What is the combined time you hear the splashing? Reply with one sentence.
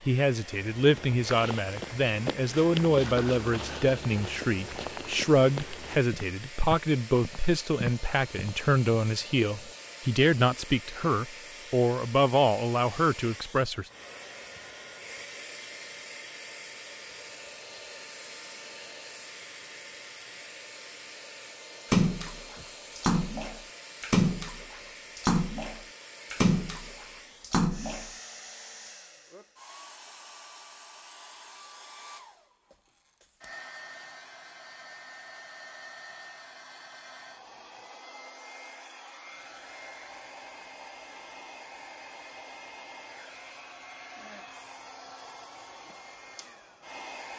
You can hear the splashing for 6 seconds altogether.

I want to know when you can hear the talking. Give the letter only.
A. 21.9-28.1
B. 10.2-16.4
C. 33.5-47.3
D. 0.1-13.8
D.